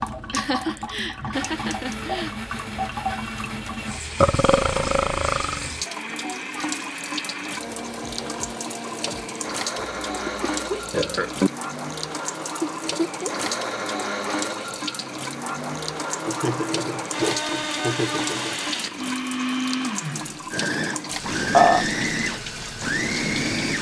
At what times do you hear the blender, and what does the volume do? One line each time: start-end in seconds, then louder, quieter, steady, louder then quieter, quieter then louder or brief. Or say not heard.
0.0-23.7 louder.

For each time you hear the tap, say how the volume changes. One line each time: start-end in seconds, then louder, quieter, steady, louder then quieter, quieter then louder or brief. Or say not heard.
0.0-23.7 steady.